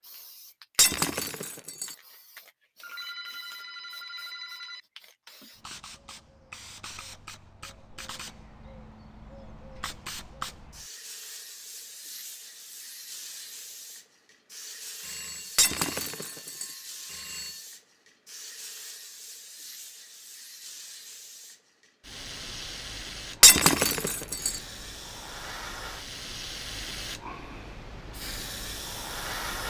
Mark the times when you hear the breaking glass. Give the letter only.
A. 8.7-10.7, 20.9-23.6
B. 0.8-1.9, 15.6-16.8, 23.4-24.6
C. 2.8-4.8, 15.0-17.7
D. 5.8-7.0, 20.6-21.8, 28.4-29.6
B.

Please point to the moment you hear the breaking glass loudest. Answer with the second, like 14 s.
24 s.